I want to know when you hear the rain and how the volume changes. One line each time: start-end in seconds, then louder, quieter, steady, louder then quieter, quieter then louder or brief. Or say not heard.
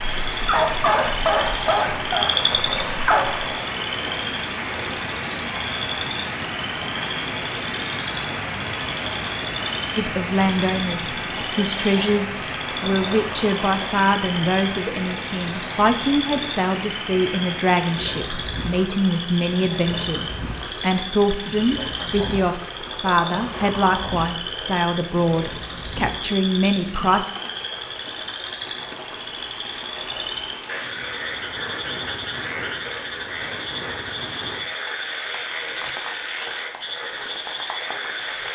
0.0-38.5 quieter.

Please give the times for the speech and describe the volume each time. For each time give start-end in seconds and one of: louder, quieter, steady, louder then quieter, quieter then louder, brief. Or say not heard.
9.9-27.2 steady.